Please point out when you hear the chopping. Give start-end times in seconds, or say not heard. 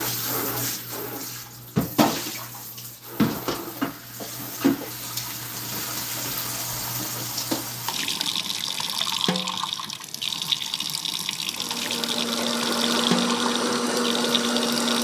not heard.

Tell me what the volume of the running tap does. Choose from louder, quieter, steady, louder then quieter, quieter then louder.
steady.